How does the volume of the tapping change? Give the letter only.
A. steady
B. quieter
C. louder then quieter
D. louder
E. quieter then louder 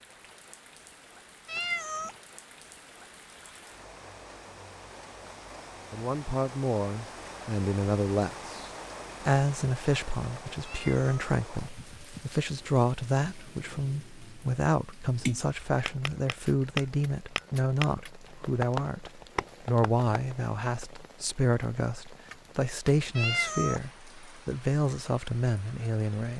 C.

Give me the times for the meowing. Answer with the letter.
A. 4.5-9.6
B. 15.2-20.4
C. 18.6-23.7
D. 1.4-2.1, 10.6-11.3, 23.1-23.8
D.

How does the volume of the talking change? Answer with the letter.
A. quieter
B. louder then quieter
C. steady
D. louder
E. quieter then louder
C.